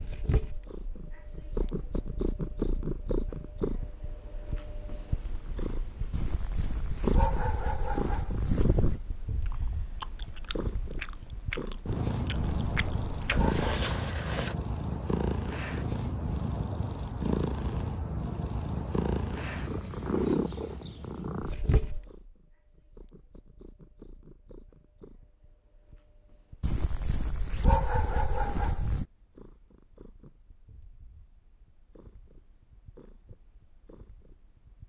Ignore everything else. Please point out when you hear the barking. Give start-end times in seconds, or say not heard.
6.1-9.0, 12.3-13.6, 26.6-29.1.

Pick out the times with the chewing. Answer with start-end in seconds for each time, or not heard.
9.4-14.6.